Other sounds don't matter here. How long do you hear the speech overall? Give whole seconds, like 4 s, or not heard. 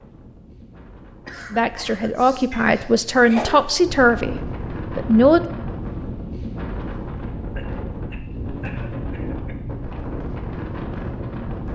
4 s.